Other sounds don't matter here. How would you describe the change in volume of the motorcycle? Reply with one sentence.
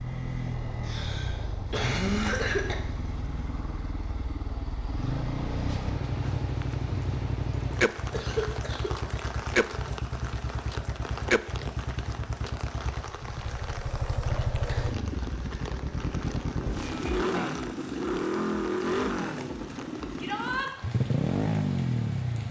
The volume of the motorcycle goes up.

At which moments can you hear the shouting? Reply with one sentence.
You can hear the shouting from 20.1 to 20.7 s.